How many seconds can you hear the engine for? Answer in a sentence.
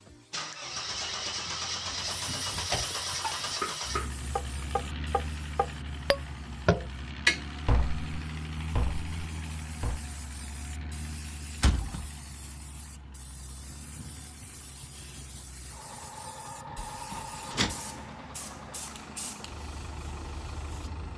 The engine can be heard for 21 seconds in total.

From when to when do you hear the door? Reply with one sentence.
You can hear the door from 1.9 to 3.0 s, from 11.6 to 12.1 s and from 16.8 to 17.8 s.